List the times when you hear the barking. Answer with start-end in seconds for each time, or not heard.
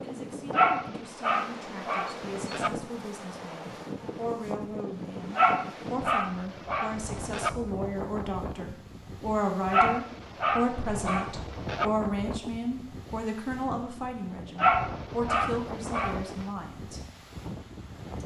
0.5-2.7, 5.3-7.5, 9.7-11.9, 14.6-16.4.